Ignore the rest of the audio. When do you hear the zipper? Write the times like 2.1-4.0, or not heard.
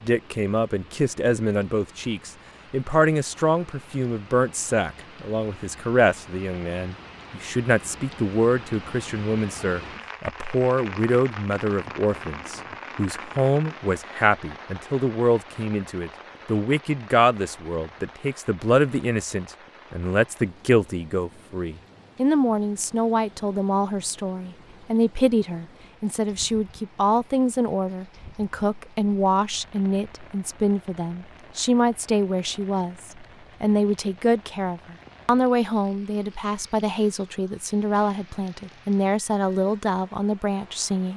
not heard.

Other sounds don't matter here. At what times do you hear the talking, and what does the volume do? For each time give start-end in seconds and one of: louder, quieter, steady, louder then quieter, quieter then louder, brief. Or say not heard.
0.0-41.1 steady.